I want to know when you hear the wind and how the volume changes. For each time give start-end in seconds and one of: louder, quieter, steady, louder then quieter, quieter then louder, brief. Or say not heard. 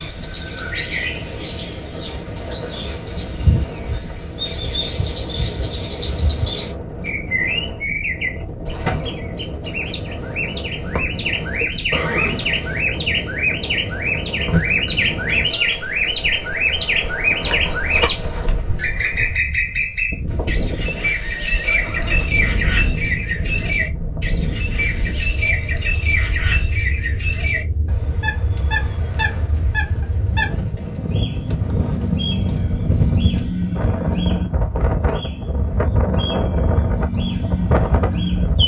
0.0-38.6 louder.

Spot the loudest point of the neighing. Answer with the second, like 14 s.
12 s.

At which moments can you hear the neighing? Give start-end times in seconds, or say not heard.
11.9-12.8, 20.2-22.2.